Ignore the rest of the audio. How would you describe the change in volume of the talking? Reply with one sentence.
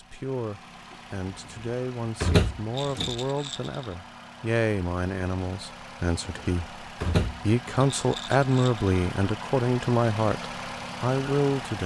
The loudness of the talking goes up.